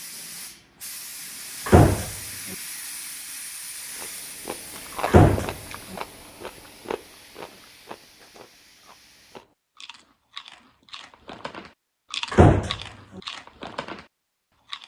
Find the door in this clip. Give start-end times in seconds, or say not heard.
1.6-2.5, 5.0-5.5, 12.3-13.2.